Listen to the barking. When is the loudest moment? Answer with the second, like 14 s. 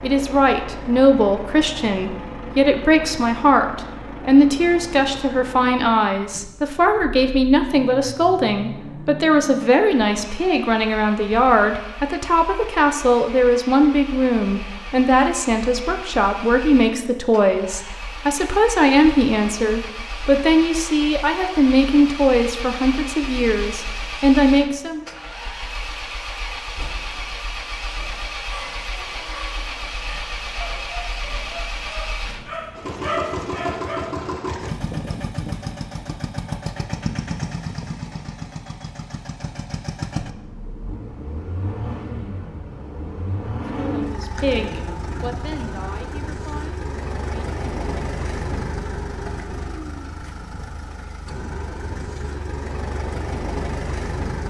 33 s.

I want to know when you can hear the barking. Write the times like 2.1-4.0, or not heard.
27.9-34.3.